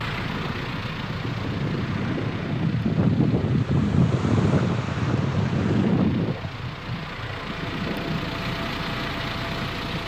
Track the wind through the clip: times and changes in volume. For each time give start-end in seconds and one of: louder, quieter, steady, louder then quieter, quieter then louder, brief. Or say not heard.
0.0-10.0 louder then quieter.